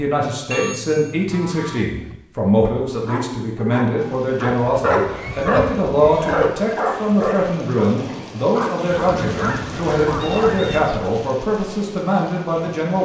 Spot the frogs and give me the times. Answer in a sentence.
You can't hear the frogs here.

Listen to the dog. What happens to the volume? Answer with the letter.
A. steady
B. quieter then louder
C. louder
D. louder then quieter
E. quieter
D.